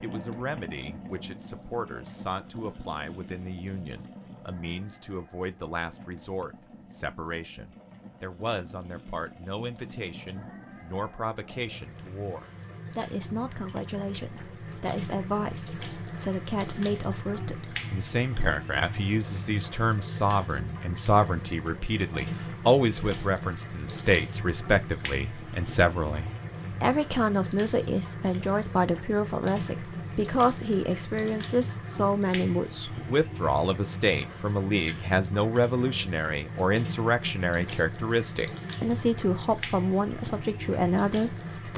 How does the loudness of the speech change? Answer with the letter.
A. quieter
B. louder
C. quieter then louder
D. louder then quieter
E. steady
B.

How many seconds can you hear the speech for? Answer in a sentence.
You can hear the speech for 42 seconds altogether.